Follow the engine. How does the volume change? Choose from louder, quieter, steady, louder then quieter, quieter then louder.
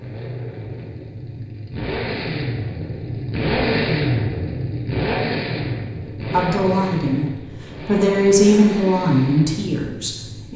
louder then quieter.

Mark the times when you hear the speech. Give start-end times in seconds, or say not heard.
6.2-10.5.